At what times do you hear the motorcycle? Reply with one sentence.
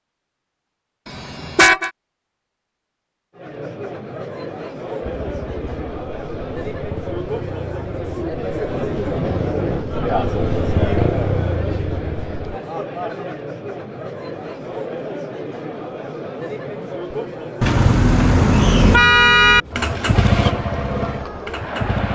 The motorcycle can be heard from 5.0 to 12.6 s and from 19.6 to 22.1 s.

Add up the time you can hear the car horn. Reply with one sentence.
You can hear the car horn for 3 seconds altogether.